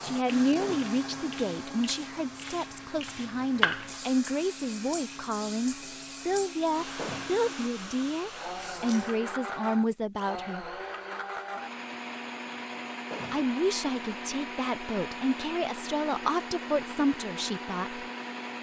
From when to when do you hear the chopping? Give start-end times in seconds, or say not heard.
not heard.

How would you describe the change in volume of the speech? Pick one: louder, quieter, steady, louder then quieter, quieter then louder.
steady.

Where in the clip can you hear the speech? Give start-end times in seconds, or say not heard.
0.0-10.7, 13.3-18.1.